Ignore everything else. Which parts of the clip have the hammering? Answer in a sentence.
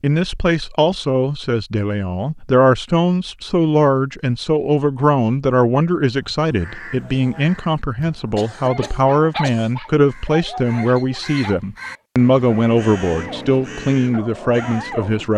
You can't hear the hammering here.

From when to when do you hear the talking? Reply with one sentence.
The talking can be heard from 0.0 to 15.3 s.